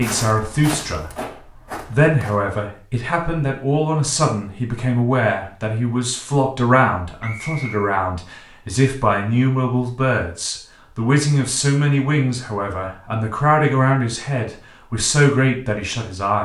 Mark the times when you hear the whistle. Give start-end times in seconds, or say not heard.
7.2-7.9.